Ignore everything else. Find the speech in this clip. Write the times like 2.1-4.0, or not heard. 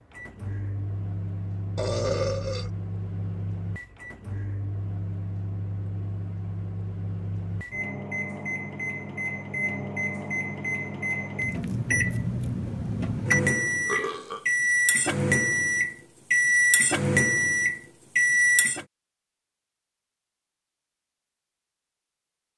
not heard.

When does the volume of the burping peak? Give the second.
2 s.